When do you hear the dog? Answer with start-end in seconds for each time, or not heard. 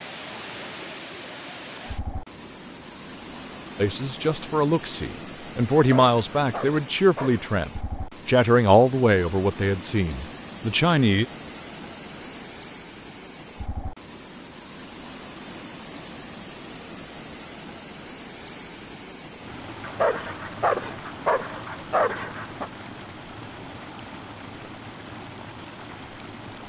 5.8-7.5, 19.8-22.7.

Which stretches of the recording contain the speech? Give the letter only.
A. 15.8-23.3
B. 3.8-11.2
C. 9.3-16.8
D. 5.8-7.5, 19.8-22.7
B.